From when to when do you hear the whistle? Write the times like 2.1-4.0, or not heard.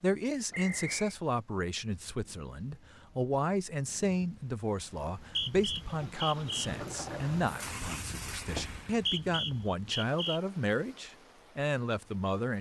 0.5-1.1, 5.2-6.7, 8.9-10.4.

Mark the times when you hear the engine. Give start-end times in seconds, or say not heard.
5.8-9.1.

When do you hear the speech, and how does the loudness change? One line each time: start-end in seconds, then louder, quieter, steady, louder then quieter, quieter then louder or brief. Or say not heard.
0.0-12.5 steady.